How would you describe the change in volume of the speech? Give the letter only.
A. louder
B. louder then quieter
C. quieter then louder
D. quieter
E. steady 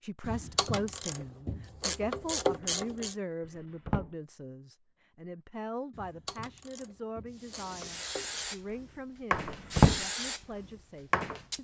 D.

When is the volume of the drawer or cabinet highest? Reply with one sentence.
The loudest moment of the drawer or cabinet is at 10 seconds.